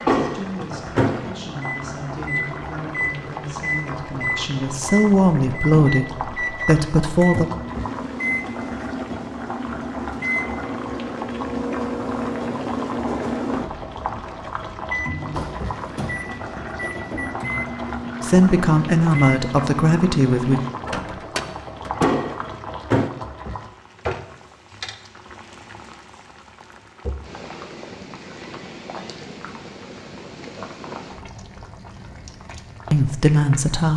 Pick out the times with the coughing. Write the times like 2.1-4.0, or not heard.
not heard.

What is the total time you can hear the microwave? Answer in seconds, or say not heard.
23 s.